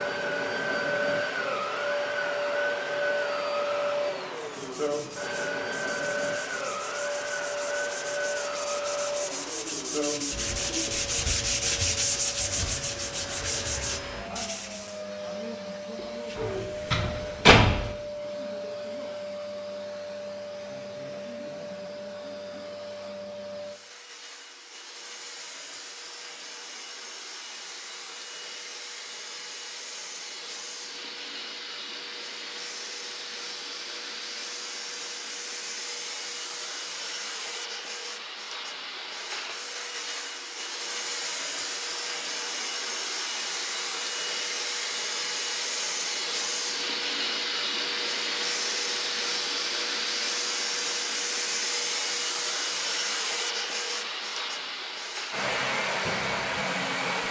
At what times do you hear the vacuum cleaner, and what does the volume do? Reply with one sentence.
You can hear the vacuum cleaner from 0.0 to 57.2 s, getting quieter then louder.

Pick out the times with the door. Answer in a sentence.
You can hear the door from 16.4 to 17.9 s.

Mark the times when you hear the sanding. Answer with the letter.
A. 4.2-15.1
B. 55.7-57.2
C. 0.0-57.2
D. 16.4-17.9
A.